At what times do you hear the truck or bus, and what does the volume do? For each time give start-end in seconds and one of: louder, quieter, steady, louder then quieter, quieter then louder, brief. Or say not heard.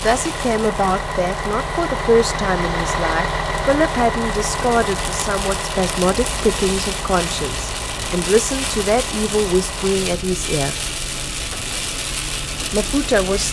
0.0-13.4 quieter.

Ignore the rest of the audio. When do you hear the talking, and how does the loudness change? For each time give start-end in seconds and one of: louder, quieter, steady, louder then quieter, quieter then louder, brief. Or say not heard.
0.0-10.8 steady
12.7-13.4 brief.